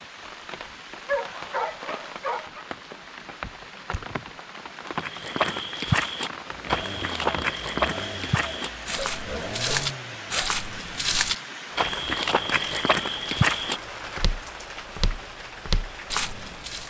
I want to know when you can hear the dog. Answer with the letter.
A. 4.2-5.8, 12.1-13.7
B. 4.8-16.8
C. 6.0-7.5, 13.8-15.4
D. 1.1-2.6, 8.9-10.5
D.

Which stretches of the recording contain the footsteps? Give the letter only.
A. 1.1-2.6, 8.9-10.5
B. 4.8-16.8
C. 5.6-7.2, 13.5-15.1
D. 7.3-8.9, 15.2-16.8
B.